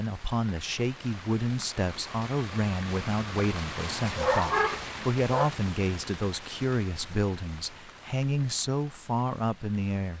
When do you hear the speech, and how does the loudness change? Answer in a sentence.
You can hear the speech from 0.0 to 10.1 s, at a steady volume.